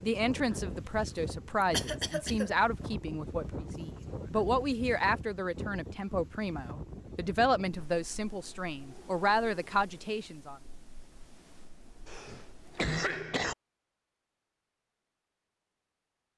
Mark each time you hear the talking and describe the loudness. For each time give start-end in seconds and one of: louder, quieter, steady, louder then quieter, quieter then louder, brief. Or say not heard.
0.0-10.6 steady.